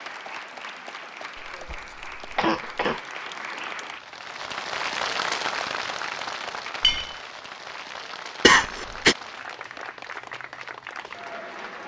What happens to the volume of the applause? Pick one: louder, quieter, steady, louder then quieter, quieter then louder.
louder then quieter.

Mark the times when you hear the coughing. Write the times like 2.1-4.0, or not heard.
1.4-3.0, 8.4-9.2.